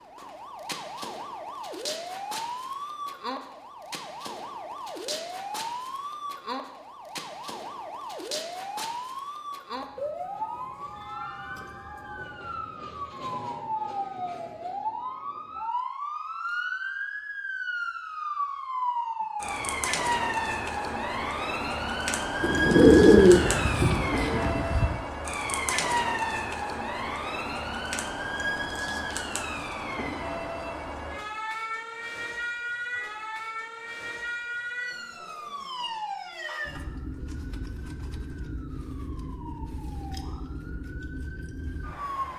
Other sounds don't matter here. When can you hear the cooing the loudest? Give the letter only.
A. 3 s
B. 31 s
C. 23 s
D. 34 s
C.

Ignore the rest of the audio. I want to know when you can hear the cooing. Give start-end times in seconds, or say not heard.
22.4-25.0.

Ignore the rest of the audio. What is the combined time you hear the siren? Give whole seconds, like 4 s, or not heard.
42 s.